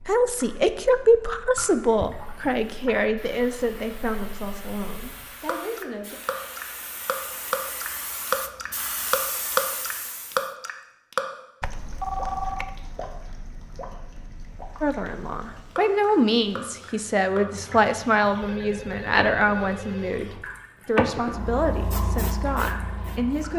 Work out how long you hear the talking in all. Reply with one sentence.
The talking can be heard for 15 seconds in total.